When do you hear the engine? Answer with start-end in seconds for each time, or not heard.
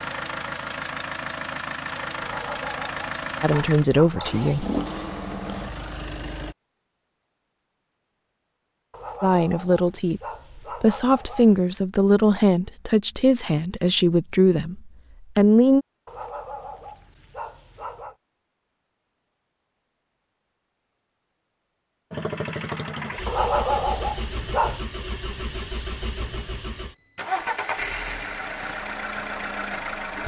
0.0-6.5, 22.1-30.2.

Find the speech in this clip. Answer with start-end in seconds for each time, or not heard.
3.4-4.7, 9.2-10.2, 10.8-15.8.